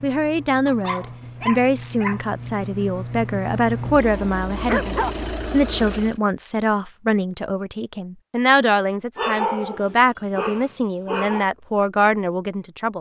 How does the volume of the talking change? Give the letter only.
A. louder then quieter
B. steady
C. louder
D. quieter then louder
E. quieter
B.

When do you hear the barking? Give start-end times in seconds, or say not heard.
0.7-2.2, 4.7-5.2, 9.2-11.5.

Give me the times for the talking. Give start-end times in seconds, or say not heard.
0.0-12.9.